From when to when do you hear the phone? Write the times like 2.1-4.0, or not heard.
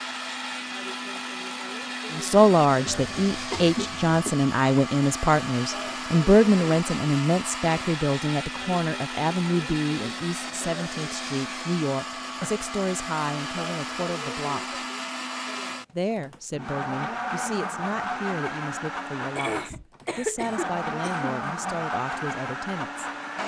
not heard.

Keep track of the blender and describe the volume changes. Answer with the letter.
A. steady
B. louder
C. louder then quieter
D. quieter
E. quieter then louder
A.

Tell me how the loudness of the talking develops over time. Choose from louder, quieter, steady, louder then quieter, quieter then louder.
quieter.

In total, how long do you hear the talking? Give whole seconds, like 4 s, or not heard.
20 s.